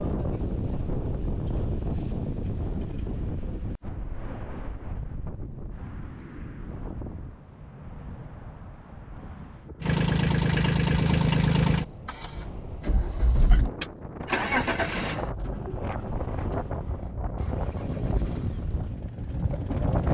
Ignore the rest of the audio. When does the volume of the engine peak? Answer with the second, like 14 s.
11 s.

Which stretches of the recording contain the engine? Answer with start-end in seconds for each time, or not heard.
9.8-20.0.